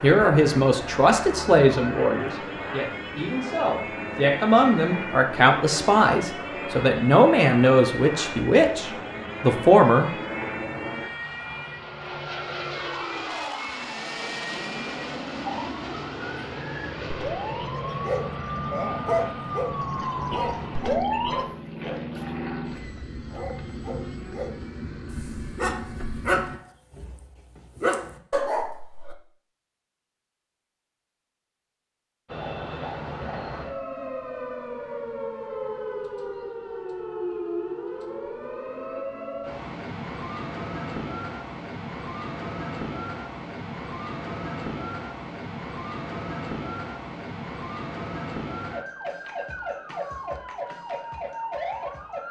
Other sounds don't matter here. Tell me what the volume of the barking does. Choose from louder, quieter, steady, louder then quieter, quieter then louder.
quieter then louder.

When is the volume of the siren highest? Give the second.
21 s.